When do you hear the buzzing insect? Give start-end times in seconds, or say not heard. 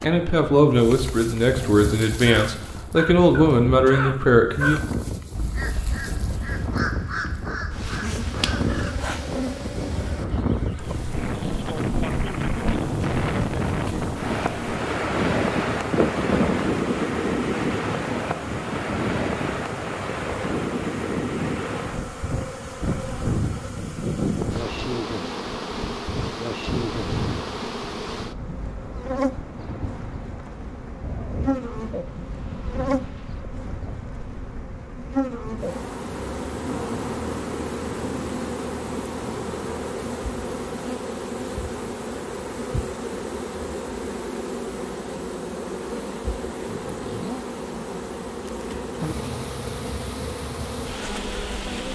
0.0-51.9.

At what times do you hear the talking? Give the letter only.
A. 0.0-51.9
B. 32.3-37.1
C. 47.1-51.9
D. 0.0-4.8
D.